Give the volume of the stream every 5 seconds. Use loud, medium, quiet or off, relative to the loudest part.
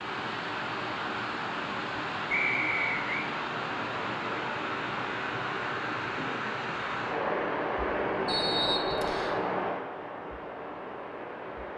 loud, loud, medium.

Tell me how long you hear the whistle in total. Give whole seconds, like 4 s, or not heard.
2 s.